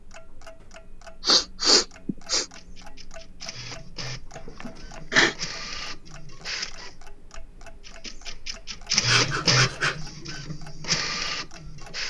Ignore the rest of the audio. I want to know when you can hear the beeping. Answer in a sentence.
The beeping can't be heard in this clip.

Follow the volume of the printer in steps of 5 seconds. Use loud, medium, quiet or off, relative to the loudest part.
quiet, loud, loud.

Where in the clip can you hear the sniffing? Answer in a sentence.
You can hear the sniffing from 1.2 to 2.5 s, from 4.3 to 5.3 s and from 9.1 to 10.0 s.